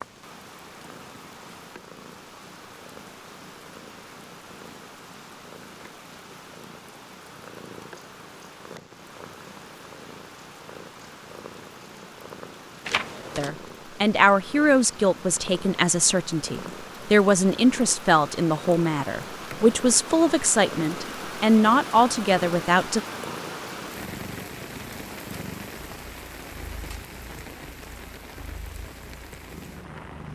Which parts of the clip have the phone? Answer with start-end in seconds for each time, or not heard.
12.8-13.5.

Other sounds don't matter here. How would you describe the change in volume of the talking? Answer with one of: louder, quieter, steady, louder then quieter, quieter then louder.
steady.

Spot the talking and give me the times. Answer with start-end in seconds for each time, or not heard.
13.3-23.0.